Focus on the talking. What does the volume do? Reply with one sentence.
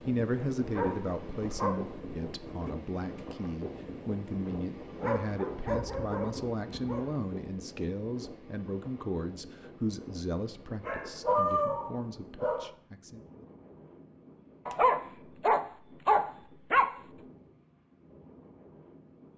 The loudness of the talking goes down.